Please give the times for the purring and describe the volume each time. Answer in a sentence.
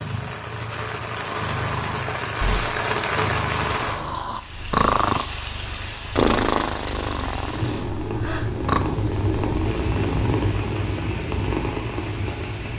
You can hear the purring from 0.0 to 12.7 s, getting quieter then louder.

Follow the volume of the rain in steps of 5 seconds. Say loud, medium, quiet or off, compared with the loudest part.
loud, medium, medium.